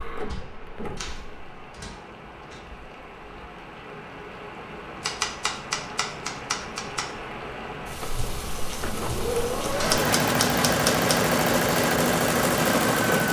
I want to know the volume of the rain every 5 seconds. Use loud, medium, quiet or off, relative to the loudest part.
quiet, medium, loud.